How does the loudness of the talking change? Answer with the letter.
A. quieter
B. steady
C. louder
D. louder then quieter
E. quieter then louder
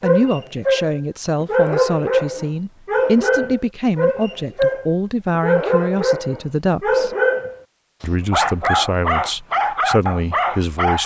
B.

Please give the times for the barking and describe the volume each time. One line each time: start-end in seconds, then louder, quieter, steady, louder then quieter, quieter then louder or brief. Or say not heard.
0.0-11.0 steady.